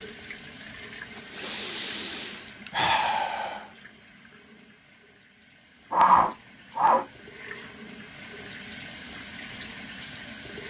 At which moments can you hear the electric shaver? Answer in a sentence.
The electric shaver can't be heard in this clip.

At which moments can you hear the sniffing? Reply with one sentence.
The sniffing can be heard from 1.3 to 3.7 s and from 5.9 to 7.0 s.